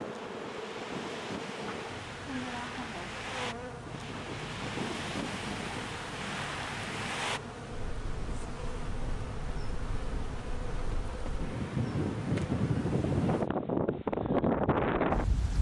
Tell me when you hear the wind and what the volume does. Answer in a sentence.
You can hear the wind from 0.0 to 15.5 s, getting louder.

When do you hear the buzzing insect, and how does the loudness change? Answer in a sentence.
You can hear the buzzing insect from 0.0 to 13.5 s, at a steady volume.